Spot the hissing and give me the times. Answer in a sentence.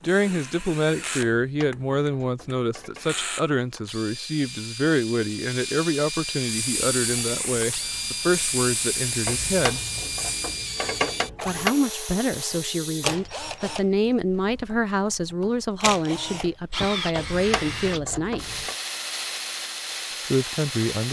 The hissing can be heard from 6.4 to 10.4 s.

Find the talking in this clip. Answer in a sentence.
The talking can be heard from 0.0 to 9.8 s, from 11.4 to 18.6 s and from 20.3 to 21.0 s.